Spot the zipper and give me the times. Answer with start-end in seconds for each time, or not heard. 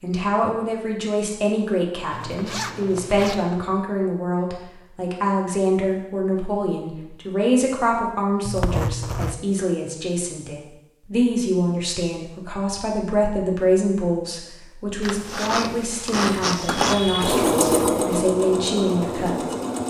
2.1-3.5, 8.4-9.4, 15.0-17.3.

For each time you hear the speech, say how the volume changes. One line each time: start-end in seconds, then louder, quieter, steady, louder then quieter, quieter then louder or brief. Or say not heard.
0.0-19.6 steady.